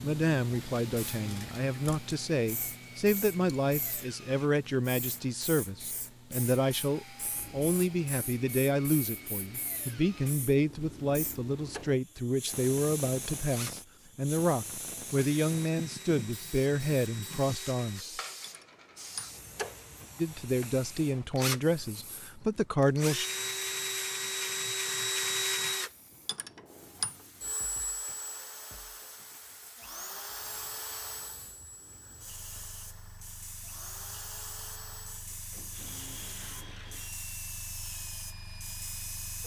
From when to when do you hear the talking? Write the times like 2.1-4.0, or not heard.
0.0-18.2, 20.1-23.2.